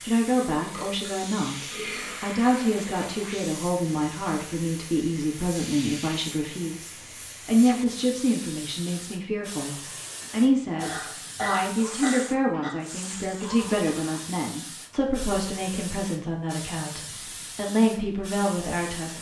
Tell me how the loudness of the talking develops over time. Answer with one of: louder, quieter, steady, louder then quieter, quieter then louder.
steady.